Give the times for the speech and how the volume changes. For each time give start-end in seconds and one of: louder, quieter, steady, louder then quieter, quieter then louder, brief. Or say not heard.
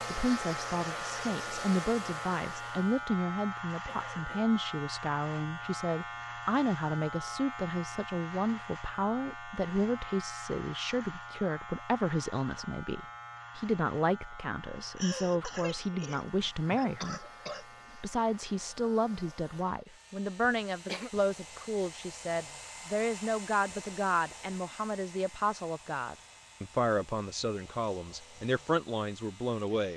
0.1-17.2 steady
17.9-29.9 steady.